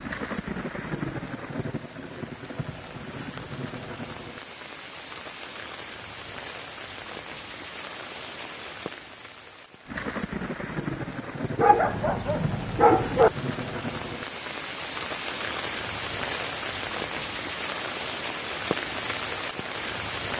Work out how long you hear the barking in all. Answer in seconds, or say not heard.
2 s.